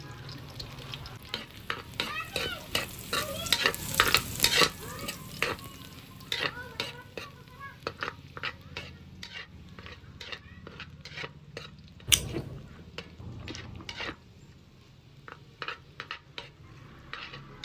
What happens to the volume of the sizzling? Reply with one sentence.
The loudness of the sizzling goes down.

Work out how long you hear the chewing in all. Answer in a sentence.
You can hear the chewing for 2 seconds altogether.